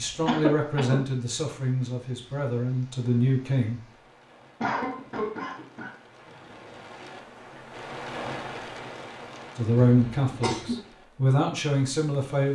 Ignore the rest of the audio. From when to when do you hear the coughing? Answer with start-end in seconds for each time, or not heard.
0.2-1.0, 4.6-5.9, 9.8-10.8.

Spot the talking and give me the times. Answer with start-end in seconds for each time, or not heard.
0.0-3.8, 9.6-12.4.